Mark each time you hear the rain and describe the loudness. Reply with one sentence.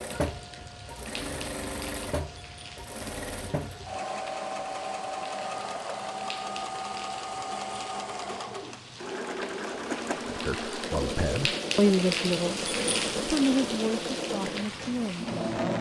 The rain can be heard from 0.0 to 15.7 s, getting louder.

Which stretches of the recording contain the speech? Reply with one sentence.
The speech can be heard from 10.1 to 15.7 s.